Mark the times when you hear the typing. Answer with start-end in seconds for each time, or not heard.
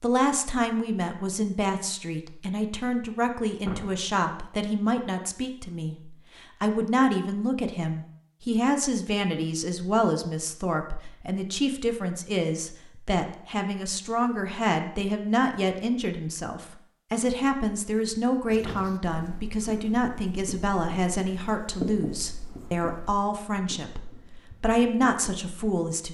not heard.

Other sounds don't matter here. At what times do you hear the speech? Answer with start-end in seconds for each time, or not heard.
0.0-26.0.